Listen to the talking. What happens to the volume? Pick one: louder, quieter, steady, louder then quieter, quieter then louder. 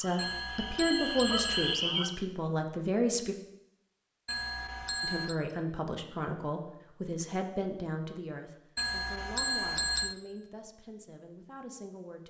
quieter.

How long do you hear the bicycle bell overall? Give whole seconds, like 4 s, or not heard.
4 s.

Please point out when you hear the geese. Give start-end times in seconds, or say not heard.
0.0-2.1.